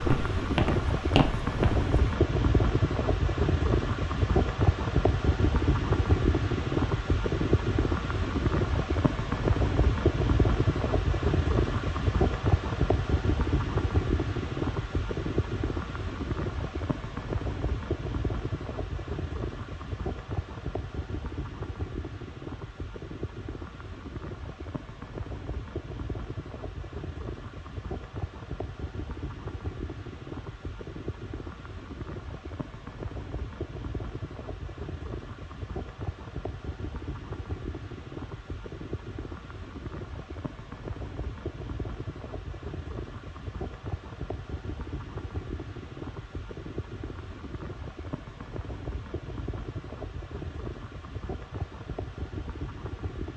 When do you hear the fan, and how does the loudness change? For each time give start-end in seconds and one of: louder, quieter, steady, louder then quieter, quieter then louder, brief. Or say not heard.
0.0-53.3 quieter.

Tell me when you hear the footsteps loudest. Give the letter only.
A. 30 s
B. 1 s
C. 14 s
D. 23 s
B.